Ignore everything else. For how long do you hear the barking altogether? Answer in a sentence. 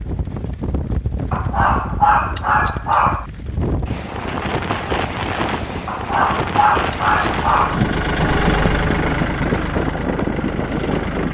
You can hear the barking for 4 seconds altogether.